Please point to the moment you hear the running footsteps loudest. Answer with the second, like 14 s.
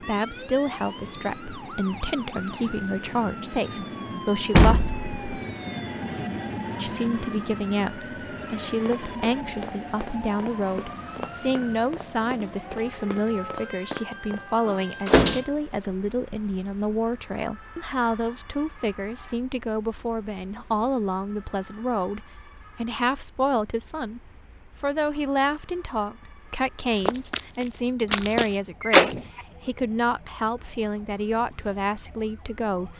28 s.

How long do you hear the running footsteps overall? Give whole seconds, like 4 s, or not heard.
7 s.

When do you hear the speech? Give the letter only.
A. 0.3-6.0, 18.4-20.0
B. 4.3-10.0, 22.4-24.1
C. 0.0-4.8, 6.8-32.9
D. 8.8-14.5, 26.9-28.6
C.